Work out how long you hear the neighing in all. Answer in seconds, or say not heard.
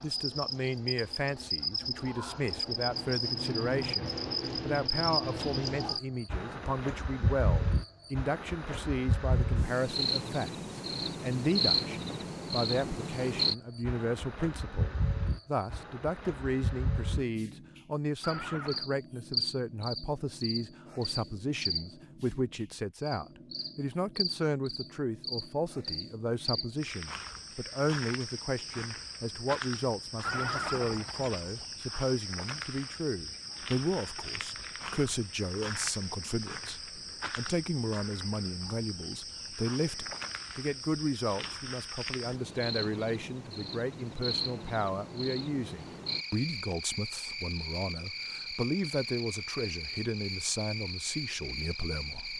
2 s.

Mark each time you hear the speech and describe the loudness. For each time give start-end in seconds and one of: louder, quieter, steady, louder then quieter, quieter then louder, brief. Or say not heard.
0.0-52.3 steady.